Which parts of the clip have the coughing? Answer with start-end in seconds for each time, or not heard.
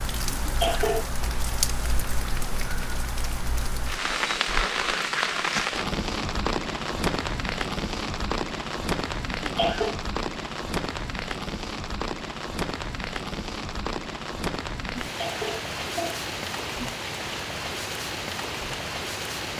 0.3-1.1, 9.4-10.0, 15.1-16.2.